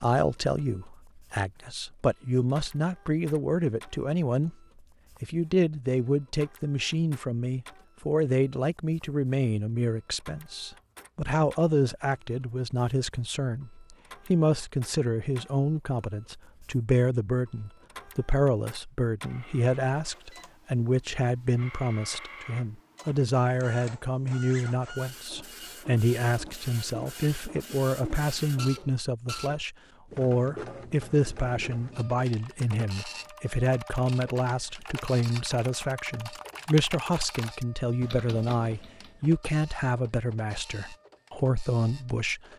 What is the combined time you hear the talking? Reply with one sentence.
You can hear the talking for 42 seconds altogether.